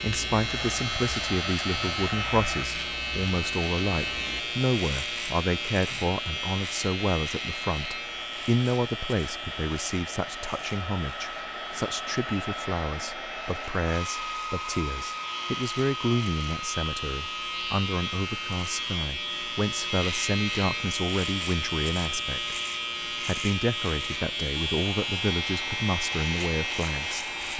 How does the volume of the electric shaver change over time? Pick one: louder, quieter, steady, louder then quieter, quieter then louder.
quieter then louder.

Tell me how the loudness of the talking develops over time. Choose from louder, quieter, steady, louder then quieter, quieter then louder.
steady.